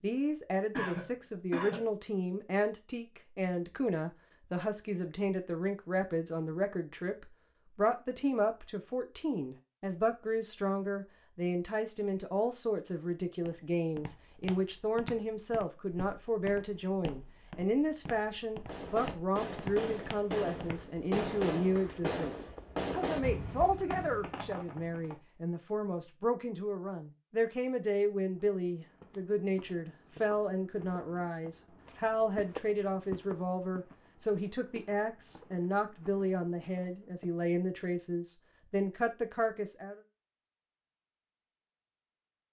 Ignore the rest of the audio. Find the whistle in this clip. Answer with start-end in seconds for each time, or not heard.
not heard.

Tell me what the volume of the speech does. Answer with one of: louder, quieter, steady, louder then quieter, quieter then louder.
steady.